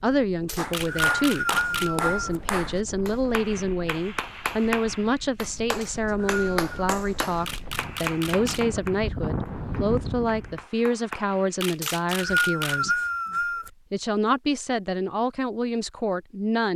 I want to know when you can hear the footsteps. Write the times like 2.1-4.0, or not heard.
not heard.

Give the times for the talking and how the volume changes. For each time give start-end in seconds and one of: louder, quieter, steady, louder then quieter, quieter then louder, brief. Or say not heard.
0.0-13.0 steady
13.9-16.7 brief.